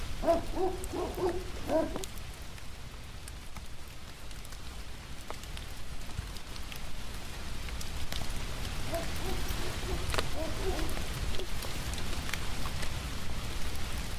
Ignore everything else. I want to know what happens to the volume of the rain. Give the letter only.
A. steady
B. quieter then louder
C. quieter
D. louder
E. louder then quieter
D.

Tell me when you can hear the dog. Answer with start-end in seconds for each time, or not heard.
0.2-2.0, 8.8-11.5.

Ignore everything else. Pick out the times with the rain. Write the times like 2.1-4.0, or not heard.
0.0-14.1.